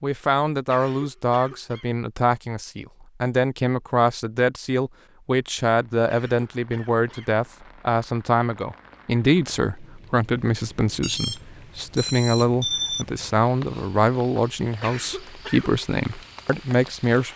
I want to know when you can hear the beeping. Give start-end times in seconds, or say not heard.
11.0-13.1.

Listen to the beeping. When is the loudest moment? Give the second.
13 s.